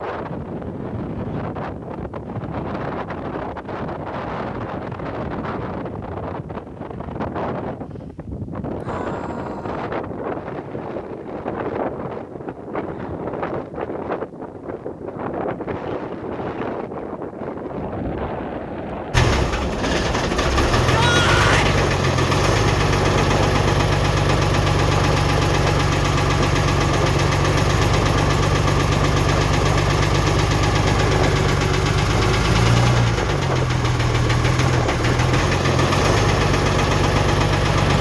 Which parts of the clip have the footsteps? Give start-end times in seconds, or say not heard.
not heard.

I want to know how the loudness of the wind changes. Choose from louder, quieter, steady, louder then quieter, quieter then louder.
steady.